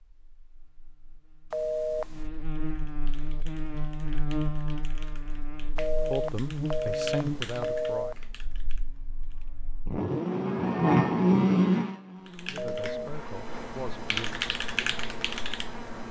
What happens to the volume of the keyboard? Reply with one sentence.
The volume of the keyboard goes up.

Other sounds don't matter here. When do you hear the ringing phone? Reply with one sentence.
You can hear the ringing phone from 1.5 to 2.2 s, from 5.8 to 8.2 s and from 12.6 to 13.1 s.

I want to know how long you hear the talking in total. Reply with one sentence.
You can hear the talking for 4 seconds altogether.